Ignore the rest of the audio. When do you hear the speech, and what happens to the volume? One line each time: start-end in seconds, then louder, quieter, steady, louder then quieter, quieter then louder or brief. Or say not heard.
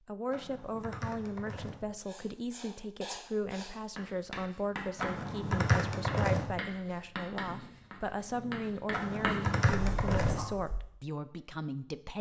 0.1-12.1 steady.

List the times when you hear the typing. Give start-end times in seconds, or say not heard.
0.3-1.8, 5.0-6.5, 8.9-10.4.